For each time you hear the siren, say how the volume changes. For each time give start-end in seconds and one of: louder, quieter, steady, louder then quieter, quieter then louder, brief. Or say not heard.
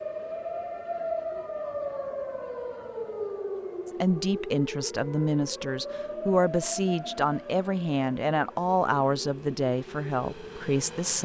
0.0-11.2 quieter.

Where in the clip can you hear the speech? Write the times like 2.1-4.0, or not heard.
3.9-11.2.